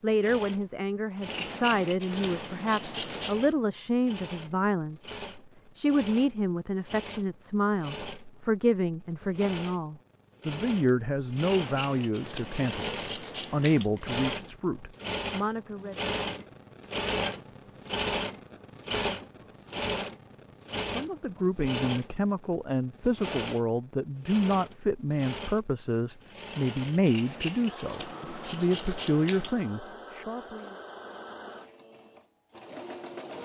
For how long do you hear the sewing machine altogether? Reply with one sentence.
The sewing machine can be heard for 33 seconds in total.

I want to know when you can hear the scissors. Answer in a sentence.
The scissors can be heard from 1.2 to 3.4 s, from 11.4 to 13.9 s and from 27.1 to 29.6 s.